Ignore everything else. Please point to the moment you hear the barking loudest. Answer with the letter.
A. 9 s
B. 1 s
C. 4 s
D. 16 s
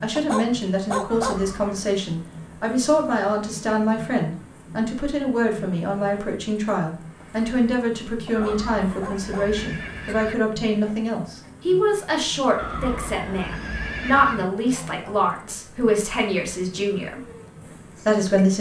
B.